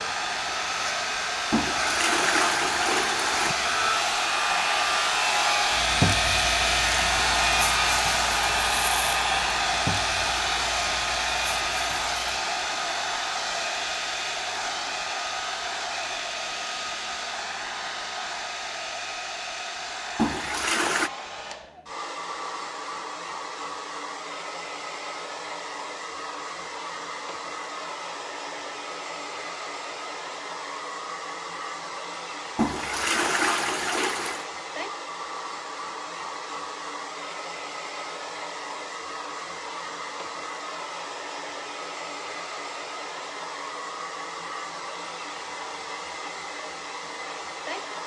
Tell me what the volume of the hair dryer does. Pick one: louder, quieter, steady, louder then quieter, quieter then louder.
quieter.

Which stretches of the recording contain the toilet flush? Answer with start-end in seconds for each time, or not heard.
1.5-3.5, 20.1-21.1, 32.5-34.5.